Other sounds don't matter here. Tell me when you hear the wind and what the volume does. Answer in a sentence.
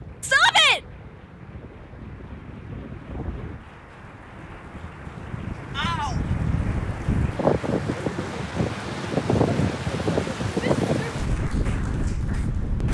You can hear the wind from 0.0 to 12.8 s, getting louder.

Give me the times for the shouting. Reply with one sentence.
You can hear the shouting from 0.2 to 0.8 s, from 5.8 to 6.2 s and from 10.6 to 11.2 s.